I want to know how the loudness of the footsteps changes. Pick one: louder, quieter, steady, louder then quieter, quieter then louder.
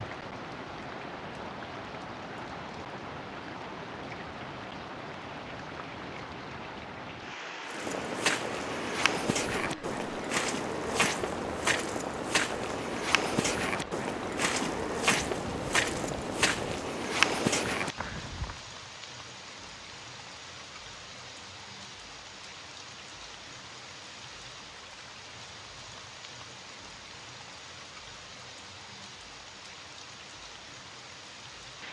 steady.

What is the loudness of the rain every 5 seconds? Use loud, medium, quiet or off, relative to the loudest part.
loud, loud, loud, loud, medium, medium, medium.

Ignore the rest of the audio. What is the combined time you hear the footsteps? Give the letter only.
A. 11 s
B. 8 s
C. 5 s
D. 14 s
A.